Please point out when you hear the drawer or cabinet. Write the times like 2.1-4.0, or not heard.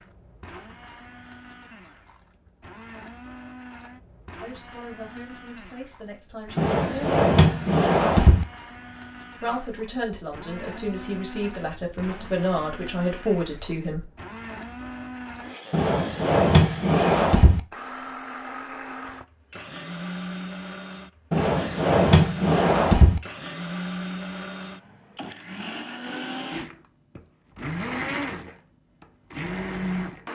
6.5-8.4, 15.7-17.6, 21.3-23.2.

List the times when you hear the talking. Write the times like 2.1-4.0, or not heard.
4.4-7.1, 9.4-14.1.